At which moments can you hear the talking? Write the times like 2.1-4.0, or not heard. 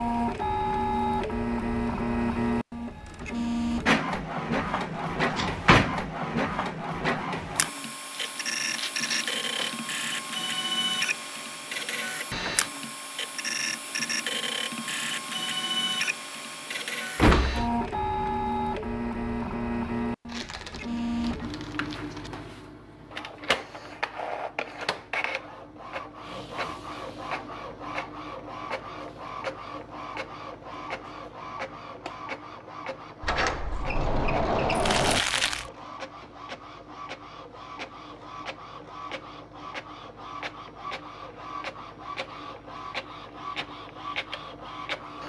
not heard.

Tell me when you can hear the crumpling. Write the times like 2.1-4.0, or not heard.
8.1-9.8, 20.2-22.3, 34.7-35.7.